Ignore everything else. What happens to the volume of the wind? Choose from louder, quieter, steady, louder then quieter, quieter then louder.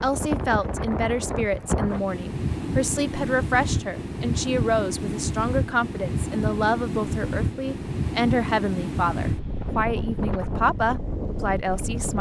steady.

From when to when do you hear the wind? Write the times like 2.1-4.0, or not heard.
0.0-12.1.